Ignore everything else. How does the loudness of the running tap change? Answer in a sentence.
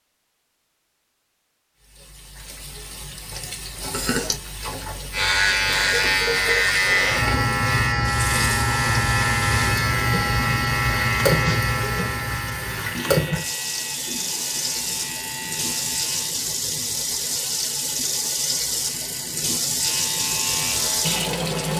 The volume of the running tap goes up.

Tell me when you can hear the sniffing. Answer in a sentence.
You can hear the sniffing from 3.9 to 4.4 s.